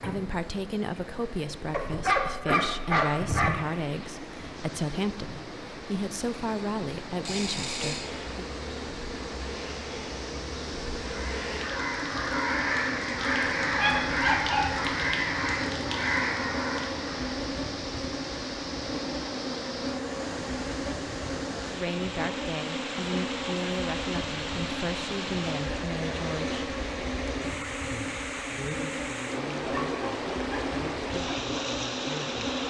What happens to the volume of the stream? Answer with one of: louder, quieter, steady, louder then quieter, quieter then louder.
louder.